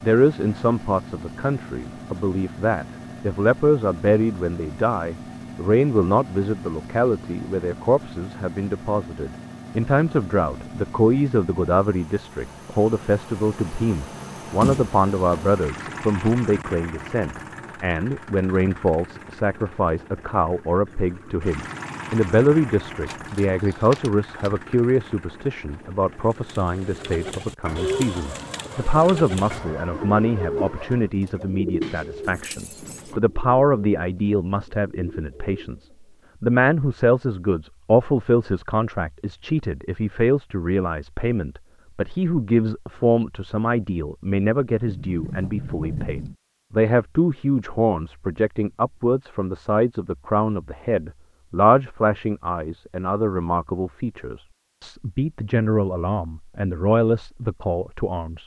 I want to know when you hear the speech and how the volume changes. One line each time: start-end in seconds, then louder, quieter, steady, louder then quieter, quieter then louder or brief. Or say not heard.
0.0-58.4 steady.